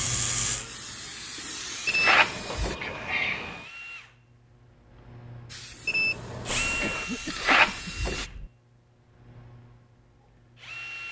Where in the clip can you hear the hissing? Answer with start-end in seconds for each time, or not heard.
0.0-2.8, 5.5-8.3.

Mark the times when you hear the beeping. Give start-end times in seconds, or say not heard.
1.9-3.6, 5.8-7.0.